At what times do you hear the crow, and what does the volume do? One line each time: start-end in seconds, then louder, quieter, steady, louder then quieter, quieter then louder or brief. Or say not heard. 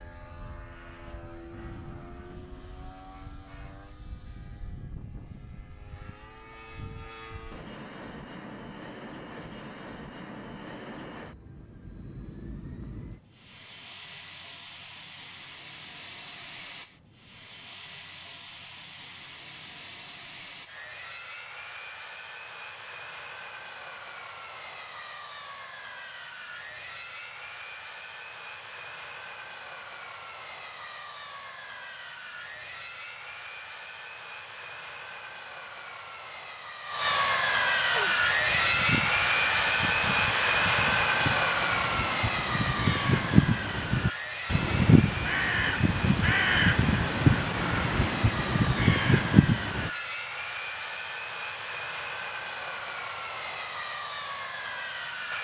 37.9-49.9 louder.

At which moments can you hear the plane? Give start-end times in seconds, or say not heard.
0.0-55.3.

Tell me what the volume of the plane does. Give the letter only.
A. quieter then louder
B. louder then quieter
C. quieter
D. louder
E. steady
B.